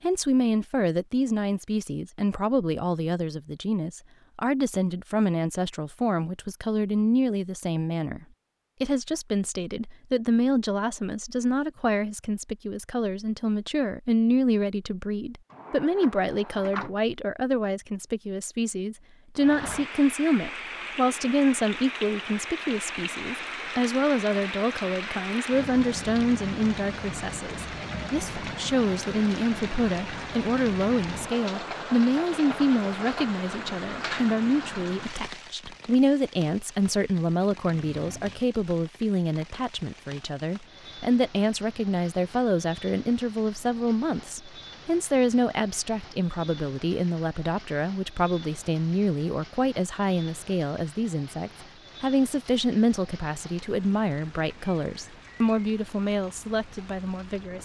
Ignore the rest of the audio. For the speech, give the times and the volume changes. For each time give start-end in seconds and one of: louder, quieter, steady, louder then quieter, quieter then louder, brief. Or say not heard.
0.0-57.5 steady.